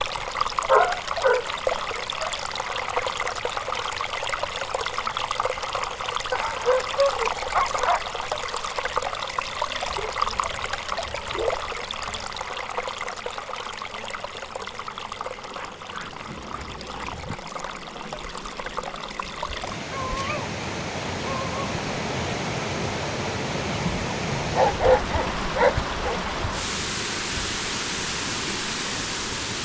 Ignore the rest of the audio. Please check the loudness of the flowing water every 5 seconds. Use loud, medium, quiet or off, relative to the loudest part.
loud, loud, loud, medium, loud, loud.